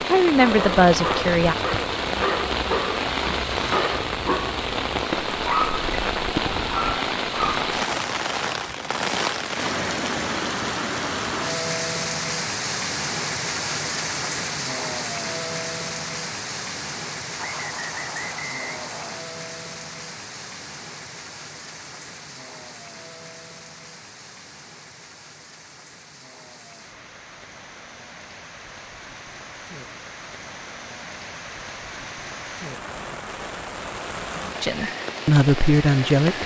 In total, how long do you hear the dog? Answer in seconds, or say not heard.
7 s.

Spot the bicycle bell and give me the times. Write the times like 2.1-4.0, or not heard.
not heard.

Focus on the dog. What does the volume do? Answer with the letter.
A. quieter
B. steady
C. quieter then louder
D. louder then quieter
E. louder
B.